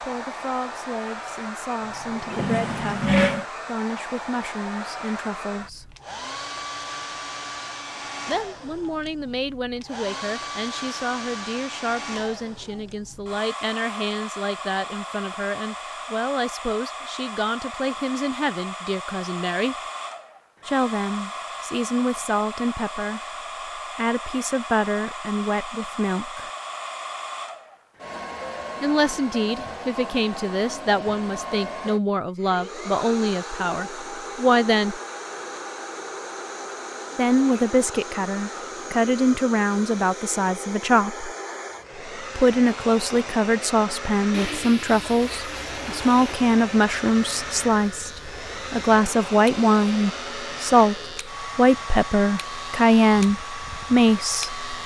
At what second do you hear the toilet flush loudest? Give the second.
3 s.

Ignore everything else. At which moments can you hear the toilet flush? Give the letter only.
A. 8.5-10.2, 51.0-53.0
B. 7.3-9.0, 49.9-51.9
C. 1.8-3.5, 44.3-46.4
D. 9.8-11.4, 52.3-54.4
C.